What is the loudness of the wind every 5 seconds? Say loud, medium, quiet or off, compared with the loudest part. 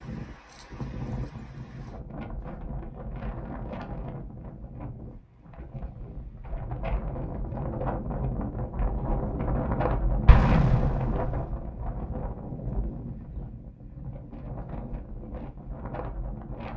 medium, loud, loud, medium.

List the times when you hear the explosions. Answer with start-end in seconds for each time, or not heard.
10.2-11.5.